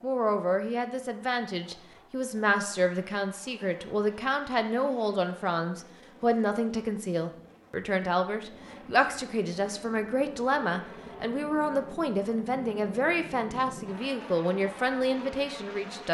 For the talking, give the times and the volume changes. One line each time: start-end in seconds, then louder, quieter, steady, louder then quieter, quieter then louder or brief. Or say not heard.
0.0-16.0 steady.